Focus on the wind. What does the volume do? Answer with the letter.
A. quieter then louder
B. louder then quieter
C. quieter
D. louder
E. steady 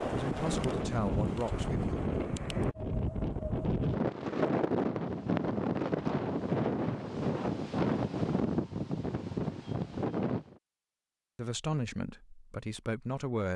E.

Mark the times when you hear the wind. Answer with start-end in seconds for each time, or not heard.
0.0-10.6.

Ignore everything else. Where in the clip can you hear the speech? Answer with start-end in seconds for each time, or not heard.
0.0-1.9, 11.3-13.5.